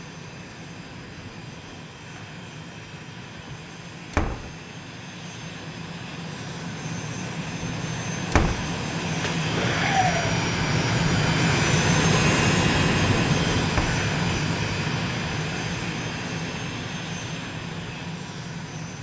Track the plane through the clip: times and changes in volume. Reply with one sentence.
The plane can be heard from 0.0 to 18.9 s, getting louder then quieter.